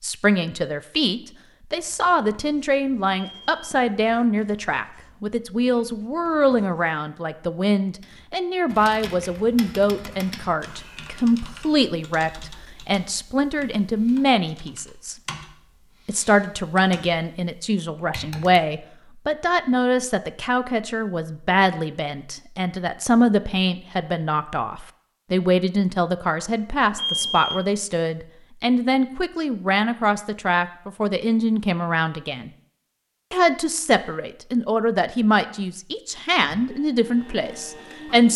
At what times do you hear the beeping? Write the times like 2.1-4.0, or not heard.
3.2-3.8, 26.9-27.6.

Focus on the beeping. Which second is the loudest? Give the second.
27 s.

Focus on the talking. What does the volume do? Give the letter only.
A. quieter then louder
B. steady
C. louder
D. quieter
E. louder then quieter
B.